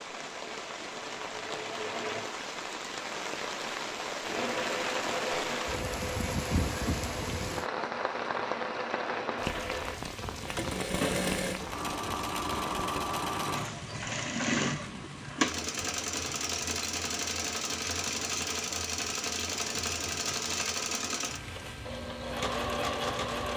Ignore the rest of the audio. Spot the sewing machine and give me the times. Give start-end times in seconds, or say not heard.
0.0-2.3, 4.2-23.5.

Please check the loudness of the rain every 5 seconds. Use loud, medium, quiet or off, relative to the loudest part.
loud, loud, medium, quiet, quiet.